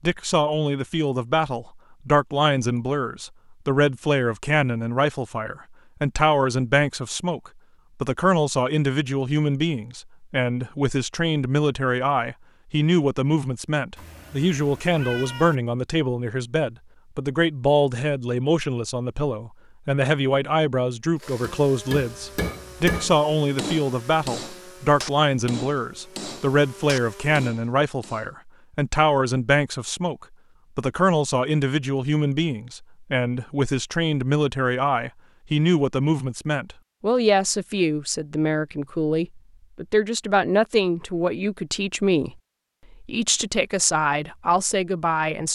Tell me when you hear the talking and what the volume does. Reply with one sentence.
The talking can be heard from 0.0 to 42.4 s, at a steady volume; and briefly from 43.0 to 45.4 s.